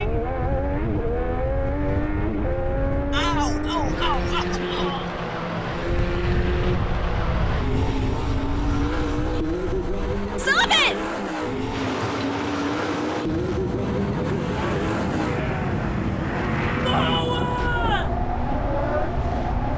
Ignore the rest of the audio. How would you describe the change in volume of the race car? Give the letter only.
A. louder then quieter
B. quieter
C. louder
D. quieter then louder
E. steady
E.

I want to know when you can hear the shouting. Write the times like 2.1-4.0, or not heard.
3.1-5.0, 10.3-10.9, 16.8-18.1.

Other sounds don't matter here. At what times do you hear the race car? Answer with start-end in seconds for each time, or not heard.
0.0-19.7.